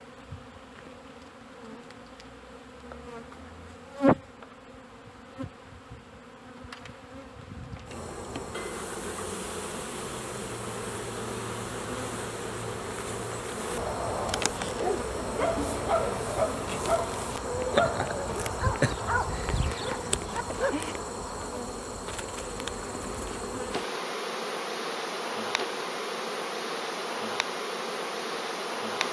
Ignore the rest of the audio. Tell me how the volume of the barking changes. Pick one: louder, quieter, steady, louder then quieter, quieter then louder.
quieter.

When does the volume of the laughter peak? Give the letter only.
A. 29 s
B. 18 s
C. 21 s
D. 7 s
B.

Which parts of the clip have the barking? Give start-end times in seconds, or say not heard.
14.6-20.9.